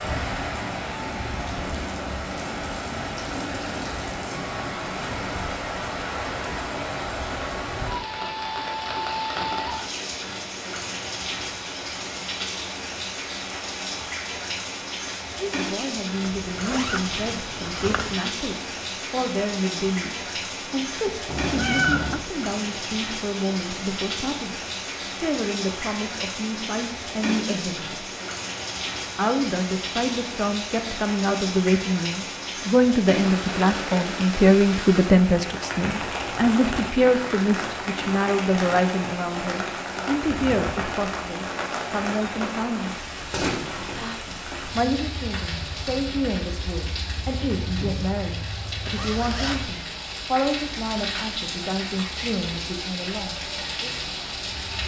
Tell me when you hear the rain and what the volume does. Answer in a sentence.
The rain can be heard from 0.0 to 54.8 s, at a steady volume.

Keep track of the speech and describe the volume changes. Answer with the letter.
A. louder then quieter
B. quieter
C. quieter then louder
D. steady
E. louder
A.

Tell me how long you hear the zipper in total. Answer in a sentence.
You can hear the zipper for 3 seconds altogether.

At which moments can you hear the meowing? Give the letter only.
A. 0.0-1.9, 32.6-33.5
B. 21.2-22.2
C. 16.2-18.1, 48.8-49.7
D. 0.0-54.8
B.